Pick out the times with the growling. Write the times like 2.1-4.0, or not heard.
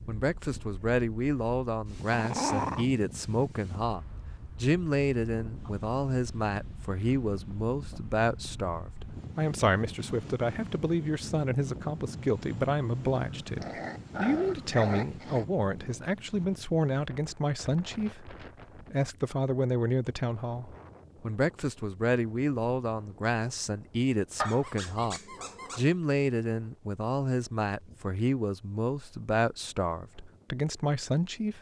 2.1-2.9, 13.1-15.4, 24.4-25.9.